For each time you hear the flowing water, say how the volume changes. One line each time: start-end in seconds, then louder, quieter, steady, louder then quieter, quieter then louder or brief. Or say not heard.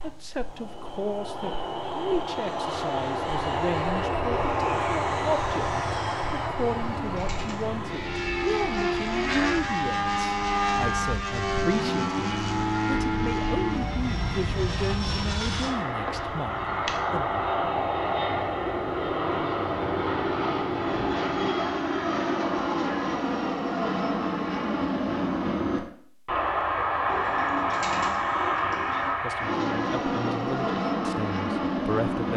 not heard.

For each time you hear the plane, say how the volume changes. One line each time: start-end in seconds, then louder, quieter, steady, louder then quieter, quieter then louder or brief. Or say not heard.
0.0-32.3 steady.